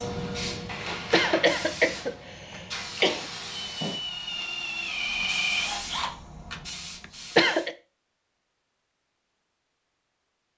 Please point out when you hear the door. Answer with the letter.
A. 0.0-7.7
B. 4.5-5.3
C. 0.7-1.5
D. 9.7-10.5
C.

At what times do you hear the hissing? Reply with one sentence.
The hissing can be heard from 0.0 to 7.7 s.